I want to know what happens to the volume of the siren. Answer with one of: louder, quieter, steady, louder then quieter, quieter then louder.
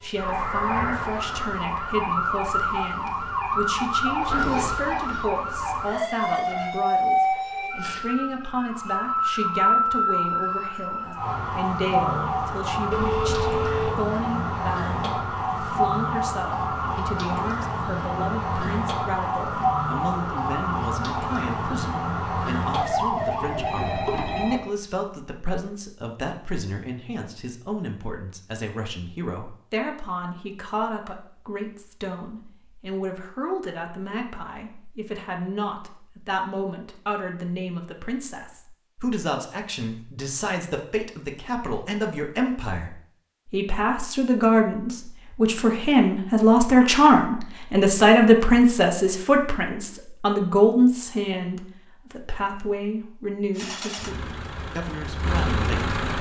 steady.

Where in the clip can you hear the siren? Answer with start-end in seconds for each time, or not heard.
0.0-24.6.